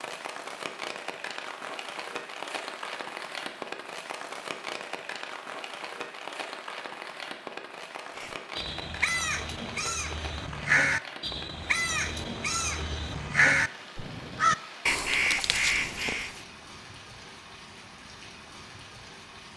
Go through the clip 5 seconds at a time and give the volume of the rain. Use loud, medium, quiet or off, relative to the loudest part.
loud, loud, medium, medium.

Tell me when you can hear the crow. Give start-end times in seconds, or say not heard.
8.2-16.4.